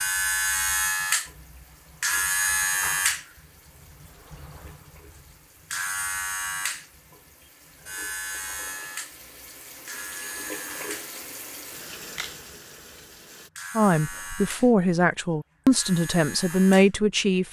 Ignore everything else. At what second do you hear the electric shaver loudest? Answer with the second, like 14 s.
3 s.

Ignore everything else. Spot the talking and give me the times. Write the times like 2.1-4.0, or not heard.
13.8-17.4.